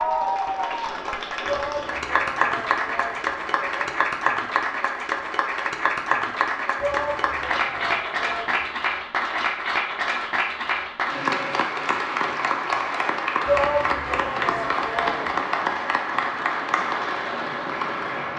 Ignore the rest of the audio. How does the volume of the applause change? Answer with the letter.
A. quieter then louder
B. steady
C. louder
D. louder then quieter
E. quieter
B.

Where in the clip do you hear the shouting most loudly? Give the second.
14 s.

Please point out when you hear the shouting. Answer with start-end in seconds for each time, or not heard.
1.4-4.0, 6.8-8.8, 13.4-15.4.